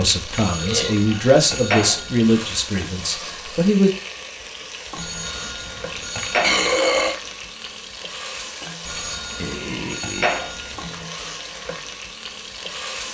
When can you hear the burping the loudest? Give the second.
7 s.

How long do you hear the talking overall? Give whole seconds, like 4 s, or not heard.
4 s.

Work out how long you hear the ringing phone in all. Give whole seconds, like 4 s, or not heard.
6 s.